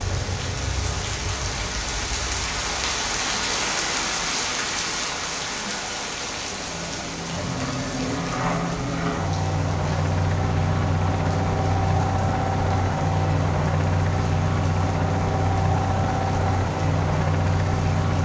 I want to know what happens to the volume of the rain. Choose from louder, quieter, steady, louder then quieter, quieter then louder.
quieter.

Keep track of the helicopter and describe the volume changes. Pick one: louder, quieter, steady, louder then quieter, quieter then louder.
louder.